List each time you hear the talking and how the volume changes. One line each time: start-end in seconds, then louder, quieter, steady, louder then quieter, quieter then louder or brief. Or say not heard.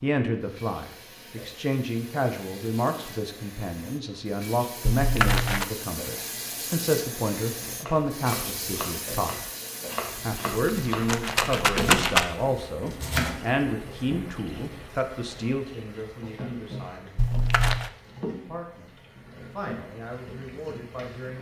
0.0-9.3 steady
10.2-17.5 quieter
18.4-21.3 brief.